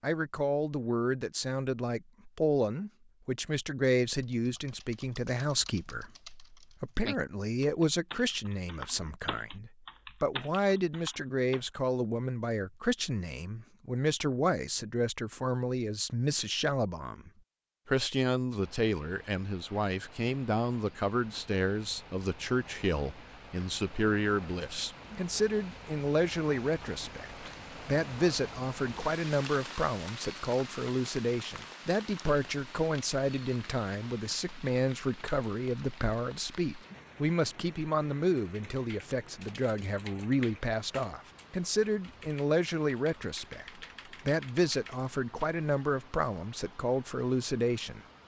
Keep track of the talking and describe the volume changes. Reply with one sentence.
The loudness of the talking stays about the same.